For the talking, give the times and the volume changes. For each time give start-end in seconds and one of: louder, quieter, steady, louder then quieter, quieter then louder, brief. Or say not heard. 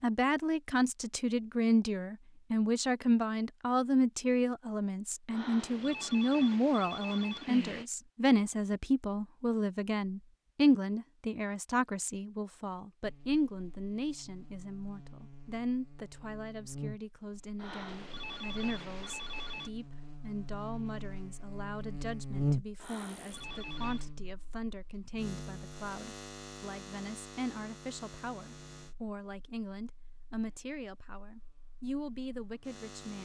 0.0-33.1 quieter.